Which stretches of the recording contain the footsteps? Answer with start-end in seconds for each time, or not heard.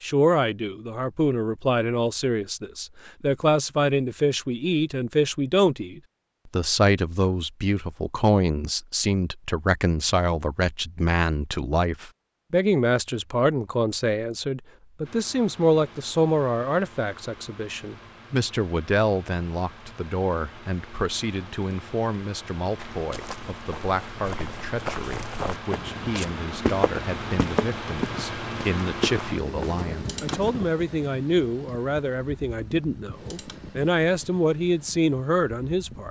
22.8-30.7.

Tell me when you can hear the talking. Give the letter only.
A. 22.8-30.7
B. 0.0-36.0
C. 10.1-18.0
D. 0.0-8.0
B.